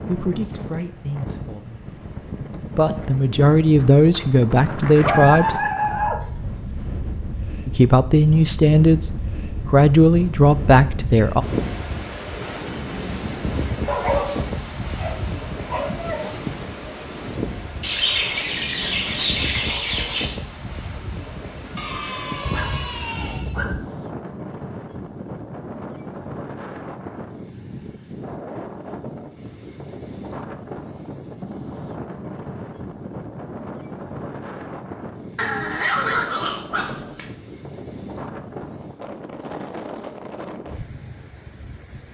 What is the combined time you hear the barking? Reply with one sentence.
The barking can be heard for 8 seconds in total.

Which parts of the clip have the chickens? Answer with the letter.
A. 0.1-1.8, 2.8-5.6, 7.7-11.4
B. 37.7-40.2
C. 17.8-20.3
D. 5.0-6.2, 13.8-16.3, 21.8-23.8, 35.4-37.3
C.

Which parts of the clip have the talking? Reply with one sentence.
The talking can be heard from 0.1 to 1.8 s, from 2.8 to 5.6 s and from 7.7 to 11.4 s.